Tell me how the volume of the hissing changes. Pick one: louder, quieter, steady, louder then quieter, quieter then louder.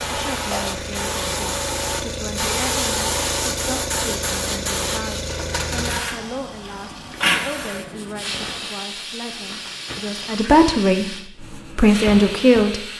quieter.